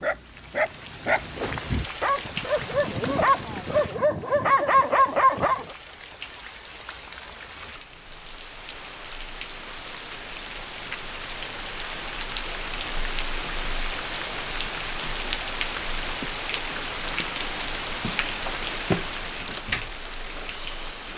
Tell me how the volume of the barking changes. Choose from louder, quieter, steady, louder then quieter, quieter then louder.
louder.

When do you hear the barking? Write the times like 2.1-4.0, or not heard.
0.0-5.7.